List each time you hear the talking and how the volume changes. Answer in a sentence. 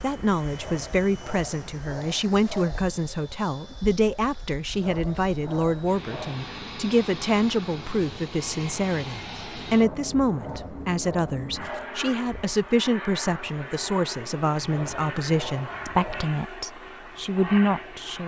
You can hear the talking from 0.0 to 18.2 s, at a steady volume.